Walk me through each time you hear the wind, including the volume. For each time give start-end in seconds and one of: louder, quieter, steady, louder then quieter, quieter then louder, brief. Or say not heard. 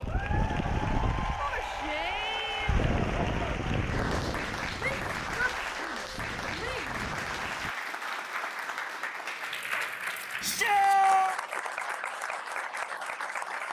0.0-7.8 quieter.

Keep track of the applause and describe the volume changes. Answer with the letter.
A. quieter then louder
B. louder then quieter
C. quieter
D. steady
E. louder
D.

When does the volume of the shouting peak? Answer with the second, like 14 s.
11 s.